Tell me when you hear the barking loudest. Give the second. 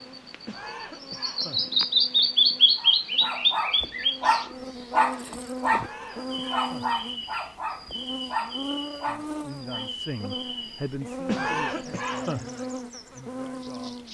5 s.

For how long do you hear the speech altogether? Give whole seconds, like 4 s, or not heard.
5 s.